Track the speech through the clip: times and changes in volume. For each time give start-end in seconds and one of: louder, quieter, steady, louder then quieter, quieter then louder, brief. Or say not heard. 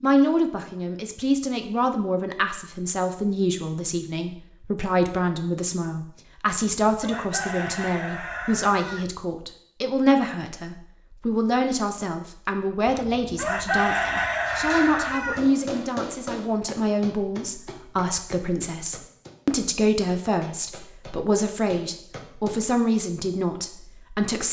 0.0-24.4 steady.